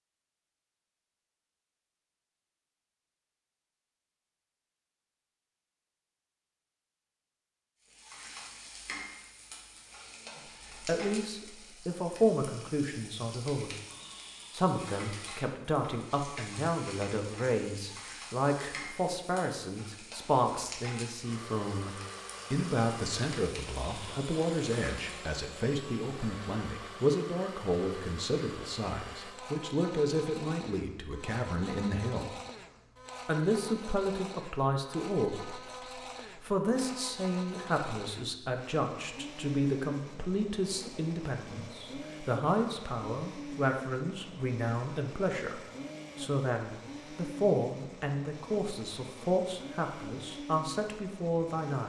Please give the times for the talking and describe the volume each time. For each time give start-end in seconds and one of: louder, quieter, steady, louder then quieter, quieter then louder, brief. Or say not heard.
10.8-13.7 brief
14.5-32.4 steady
33.2-35.5 brief
36.2-51.8 steady.